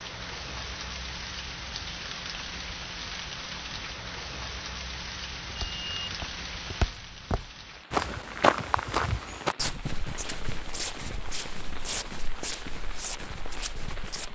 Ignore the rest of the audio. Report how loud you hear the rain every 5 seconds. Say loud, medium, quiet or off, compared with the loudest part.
loud, loud, medium.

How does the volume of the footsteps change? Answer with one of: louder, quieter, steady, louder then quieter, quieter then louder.
louder then quieter.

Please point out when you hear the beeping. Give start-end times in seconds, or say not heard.
5.5-6.2.